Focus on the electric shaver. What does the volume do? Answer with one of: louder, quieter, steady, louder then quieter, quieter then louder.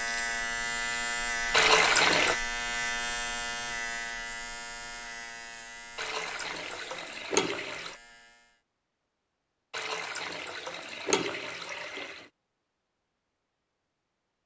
quieter.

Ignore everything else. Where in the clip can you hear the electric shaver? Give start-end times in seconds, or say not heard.
0.0-8.6.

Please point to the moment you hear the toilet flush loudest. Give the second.
2 s.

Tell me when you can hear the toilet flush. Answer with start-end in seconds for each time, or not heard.
1.5-2.4, 6.0-8.0, 9.7-12.2.